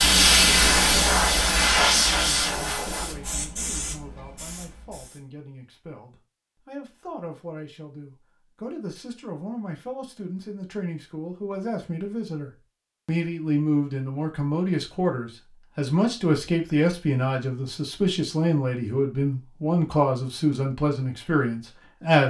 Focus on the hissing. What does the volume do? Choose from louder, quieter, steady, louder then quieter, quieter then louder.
quieter.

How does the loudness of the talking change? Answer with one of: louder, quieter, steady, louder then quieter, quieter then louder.
louder.